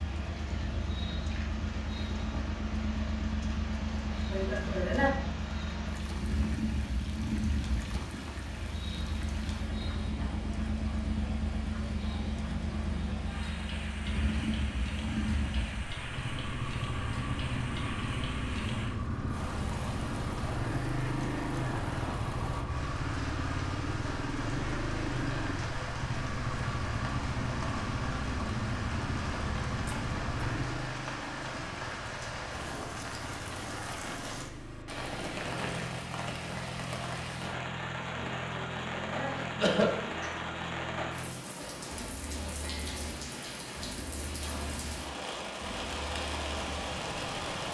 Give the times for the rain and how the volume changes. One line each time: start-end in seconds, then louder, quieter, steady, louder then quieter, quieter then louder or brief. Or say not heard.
0.0-47.6 louder.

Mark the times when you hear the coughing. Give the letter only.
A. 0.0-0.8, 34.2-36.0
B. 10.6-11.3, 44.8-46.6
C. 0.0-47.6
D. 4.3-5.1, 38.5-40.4
D.